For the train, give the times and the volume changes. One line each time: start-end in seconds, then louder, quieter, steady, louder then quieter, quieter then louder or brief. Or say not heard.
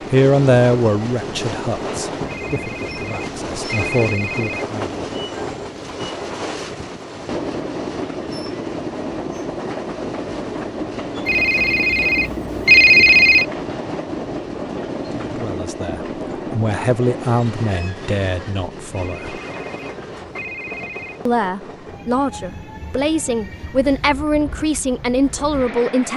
0.0-26.1 quieter.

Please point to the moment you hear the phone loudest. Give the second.
13 s.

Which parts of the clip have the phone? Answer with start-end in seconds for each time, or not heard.
2.2-4.7, 11.2-13.4, 18.9-21.2.